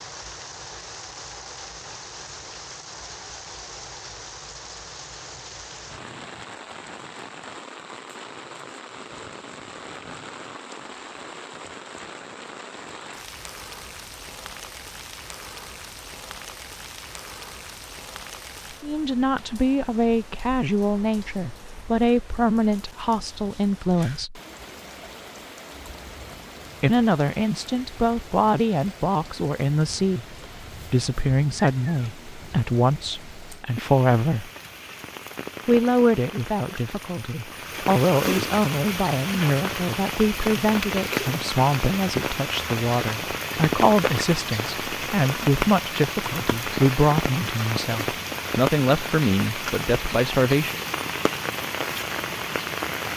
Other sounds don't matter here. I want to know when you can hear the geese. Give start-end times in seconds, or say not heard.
not heard.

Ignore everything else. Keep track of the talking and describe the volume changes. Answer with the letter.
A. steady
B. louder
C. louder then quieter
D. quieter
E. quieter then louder
A.